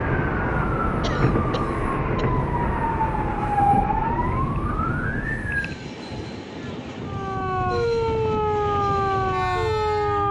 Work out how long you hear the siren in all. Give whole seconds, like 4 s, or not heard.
9 s.